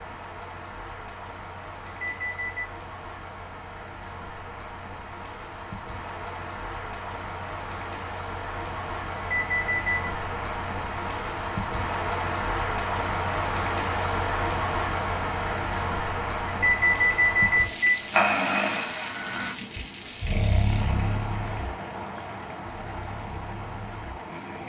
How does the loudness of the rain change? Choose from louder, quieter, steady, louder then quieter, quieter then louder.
louder then quieter.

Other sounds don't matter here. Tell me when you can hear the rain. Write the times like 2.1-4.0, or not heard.
0.0-24.6.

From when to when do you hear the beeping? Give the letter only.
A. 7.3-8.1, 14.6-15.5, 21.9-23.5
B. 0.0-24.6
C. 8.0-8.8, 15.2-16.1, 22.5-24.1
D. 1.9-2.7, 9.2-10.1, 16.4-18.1
D.